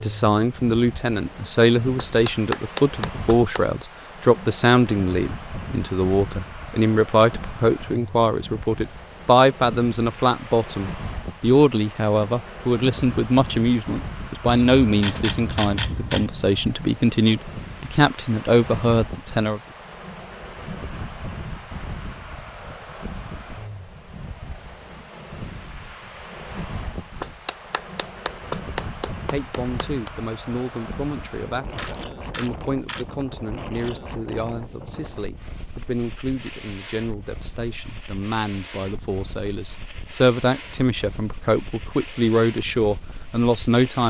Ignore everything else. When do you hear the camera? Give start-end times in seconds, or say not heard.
14.4-16.3, 31.8-33.0.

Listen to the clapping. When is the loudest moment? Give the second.
3 s.